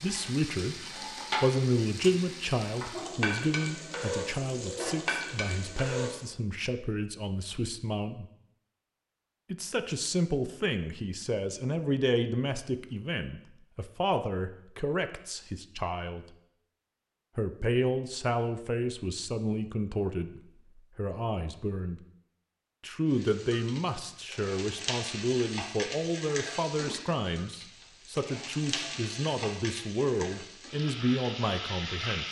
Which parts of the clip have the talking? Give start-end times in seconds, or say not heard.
0.0-8.2, 9.5-16.2, 17.4-22.0, 22.8-32.2.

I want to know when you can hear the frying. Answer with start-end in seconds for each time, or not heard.
0.0-6.3, 23.1-32.2.